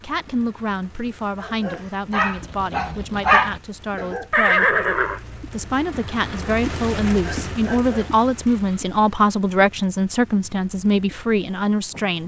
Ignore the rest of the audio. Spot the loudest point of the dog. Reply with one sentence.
The loudest moment of the dog is at 3 seconds.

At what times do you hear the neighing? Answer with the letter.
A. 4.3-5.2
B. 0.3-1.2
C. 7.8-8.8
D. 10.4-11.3
A.